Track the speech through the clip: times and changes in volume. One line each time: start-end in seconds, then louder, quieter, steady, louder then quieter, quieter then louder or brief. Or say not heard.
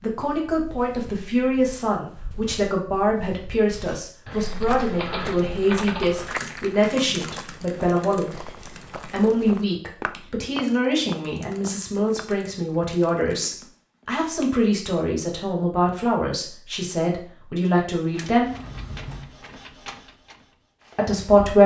0.0-8.4 steady
9.1-18.5 steady
20.9-21.6 brief.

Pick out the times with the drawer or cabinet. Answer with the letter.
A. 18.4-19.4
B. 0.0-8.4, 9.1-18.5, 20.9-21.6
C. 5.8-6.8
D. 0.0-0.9
A.